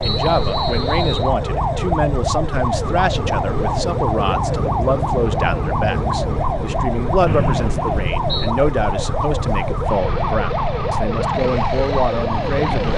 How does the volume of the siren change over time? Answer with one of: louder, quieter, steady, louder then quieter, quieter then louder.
steady.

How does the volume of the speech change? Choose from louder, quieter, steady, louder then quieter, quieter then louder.
steady.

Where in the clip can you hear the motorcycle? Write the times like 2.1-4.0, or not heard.
0.0-12.9.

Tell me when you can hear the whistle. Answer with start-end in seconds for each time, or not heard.
0.0-1.3, 7.2-8.6.